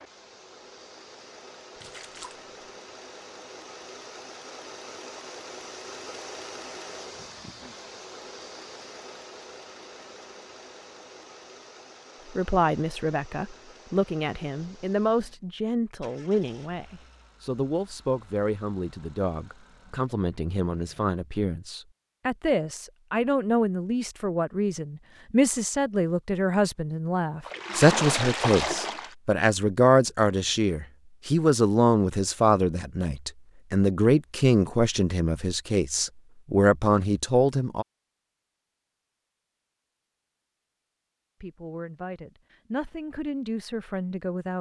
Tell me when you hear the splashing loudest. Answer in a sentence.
The loudest moment of the splashing is at 28 seconds.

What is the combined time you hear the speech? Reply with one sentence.
You can hear the speech for 29 seconds altogether.